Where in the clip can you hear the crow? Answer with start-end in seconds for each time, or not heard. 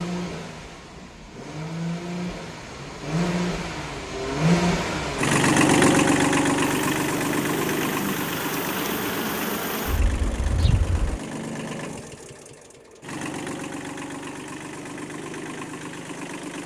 not heard.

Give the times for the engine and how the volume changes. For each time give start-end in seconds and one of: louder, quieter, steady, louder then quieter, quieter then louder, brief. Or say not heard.
0.0-16.6 louder then quieter.